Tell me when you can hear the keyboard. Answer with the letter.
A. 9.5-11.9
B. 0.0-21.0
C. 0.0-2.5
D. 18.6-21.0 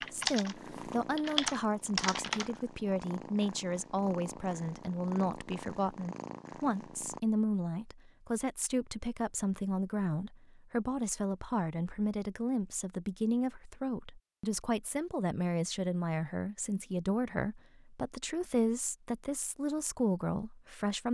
C.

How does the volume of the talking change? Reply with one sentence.
The volume of the talking stays about the same.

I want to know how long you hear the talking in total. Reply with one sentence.
The talking can be heard for 21 seconds in total.